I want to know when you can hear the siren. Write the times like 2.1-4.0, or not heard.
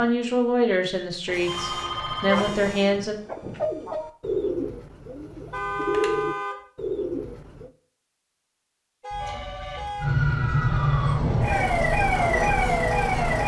9.9-13.4.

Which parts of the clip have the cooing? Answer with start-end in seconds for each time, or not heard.
2.2-7.7.